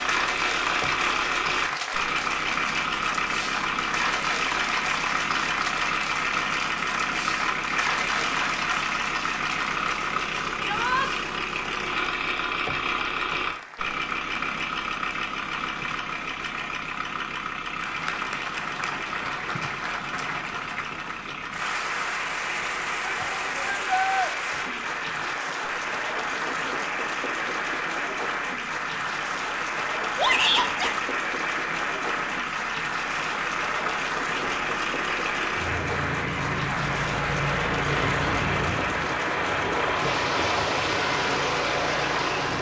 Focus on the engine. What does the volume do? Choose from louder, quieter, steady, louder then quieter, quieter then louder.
quieter then louder.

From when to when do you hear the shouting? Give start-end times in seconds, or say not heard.
10.6-11.1, 23.0-24.3, 30.1-30.9.